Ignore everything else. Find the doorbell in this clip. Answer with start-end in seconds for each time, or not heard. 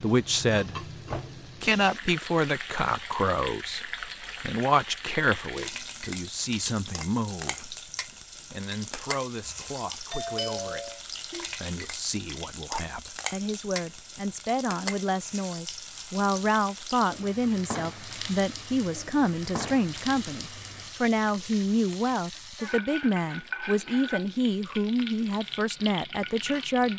9.4-11.0.